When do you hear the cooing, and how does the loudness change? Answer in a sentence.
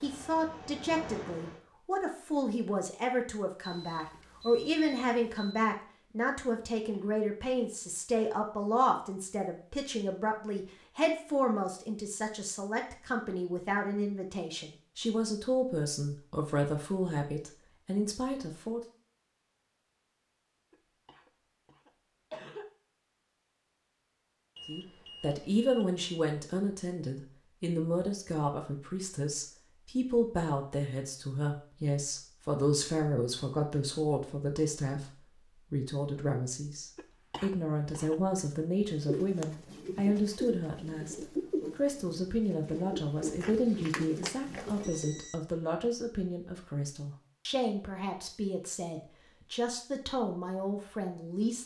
You can hear the cooing from 39.0 to 45.2 s, at a steady volume.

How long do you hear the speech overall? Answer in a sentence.
You can hear the speech for 46 seconds altogether.